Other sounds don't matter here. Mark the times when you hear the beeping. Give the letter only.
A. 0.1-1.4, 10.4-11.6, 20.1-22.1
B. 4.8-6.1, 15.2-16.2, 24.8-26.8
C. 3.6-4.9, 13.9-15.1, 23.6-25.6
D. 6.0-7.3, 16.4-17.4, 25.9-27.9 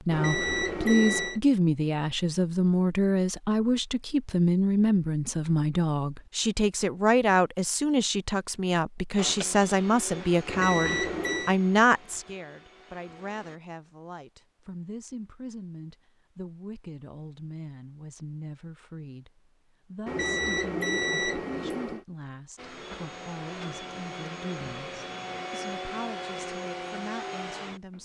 A.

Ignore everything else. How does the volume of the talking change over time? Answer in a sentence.
The volume of the talking goes down.